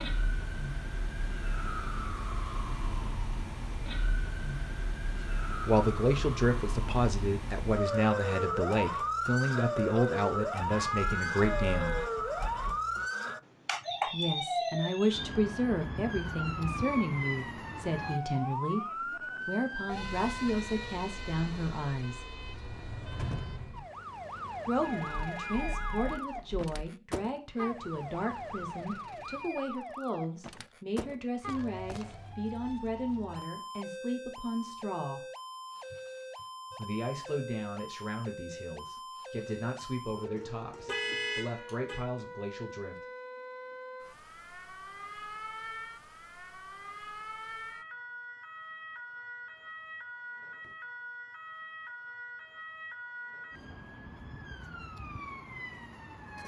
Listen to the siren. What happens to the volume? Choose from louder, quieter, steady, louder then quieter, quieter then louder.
quieter.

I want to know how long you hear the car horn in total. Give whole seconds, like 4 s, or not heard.
5 s.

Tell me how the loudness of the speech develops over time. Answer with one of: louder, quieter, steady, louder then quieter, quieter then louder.
quieter.